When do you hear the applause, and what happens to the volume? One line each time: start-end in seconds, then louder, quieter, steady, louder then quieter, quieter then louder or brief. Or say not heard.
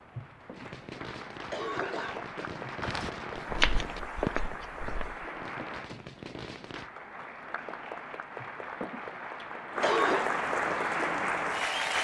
0.0-11.9 louder.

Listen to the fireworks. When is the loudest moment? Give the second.
4 s.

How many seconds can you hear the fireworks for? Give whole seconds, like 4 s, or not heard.
6 s.